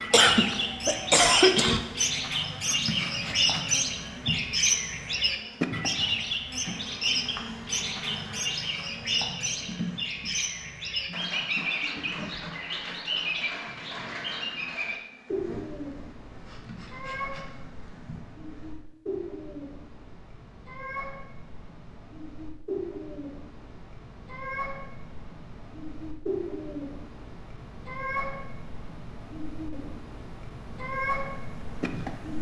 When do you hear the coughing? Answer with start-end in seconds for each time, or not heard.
0.1-1.8.